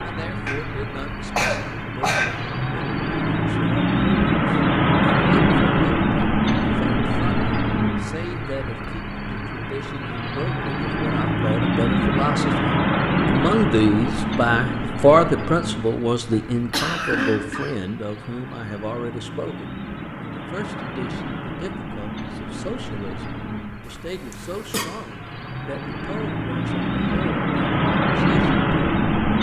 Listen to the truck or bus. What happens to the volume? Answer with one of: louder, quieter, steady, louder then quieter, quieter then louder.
quieter then louder.